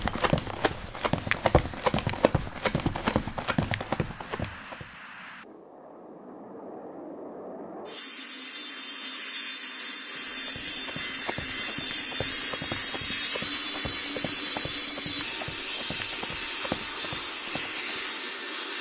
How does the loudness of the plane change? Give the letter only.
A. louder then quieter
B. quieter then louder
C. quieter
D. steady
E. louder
E.